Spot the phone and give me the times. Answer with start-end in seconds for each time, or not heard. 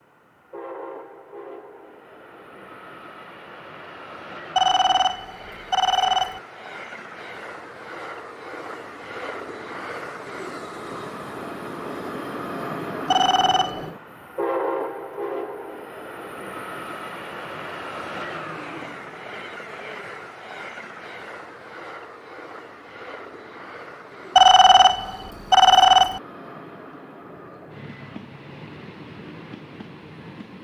4.5-6.4, 13.1-13.9, 24.4-26.2.